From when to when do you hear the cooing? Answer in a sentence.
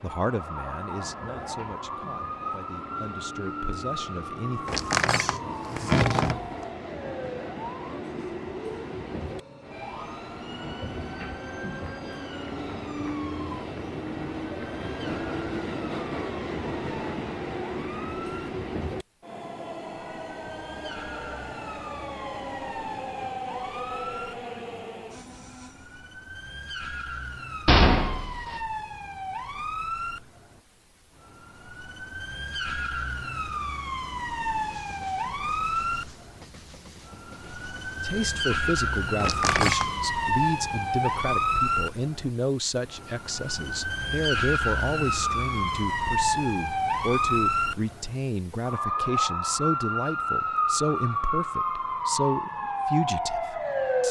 The cooing can't be heard in this clip.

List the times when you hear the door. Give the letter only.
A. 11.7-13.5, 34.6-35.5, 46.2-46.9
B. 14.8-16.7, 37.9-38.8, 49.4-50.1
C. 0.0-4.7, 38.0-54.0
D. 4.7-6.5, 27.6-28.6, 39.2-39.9
D.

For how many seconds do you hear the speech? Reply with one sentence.
You can hear the speech for 21 seconds altogether.